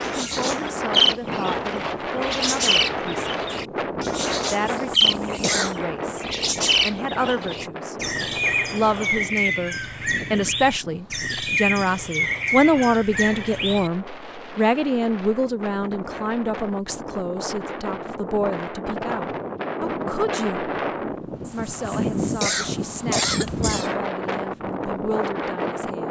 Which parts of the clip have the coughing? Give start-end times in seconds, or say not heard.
4.7-5.8, 21.4-23.9.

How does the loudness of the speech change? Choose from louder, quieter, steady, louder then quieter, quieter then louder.
louder then quieter.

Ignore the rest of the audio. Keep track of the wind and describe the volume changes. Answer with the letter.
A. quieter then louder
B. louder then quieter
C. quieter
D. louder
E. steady
A.